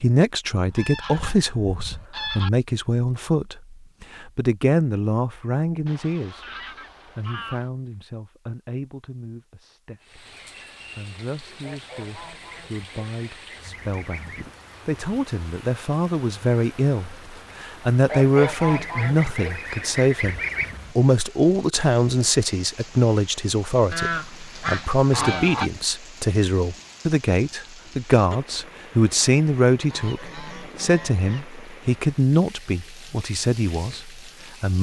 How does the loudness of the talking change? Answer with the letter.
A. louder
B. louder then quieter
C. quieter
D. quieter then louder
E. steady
D.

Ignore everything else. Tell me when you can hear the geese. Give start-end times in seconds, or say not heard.
0.7-2.5, 5.8-7.7, 11.6-14.6, 18.1-20.8, 23.9-25.7, 29.9-31.4.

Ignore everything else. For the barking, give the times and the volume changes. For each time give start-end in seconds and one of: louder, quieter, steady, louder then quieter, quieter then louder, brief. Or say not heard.
not heard.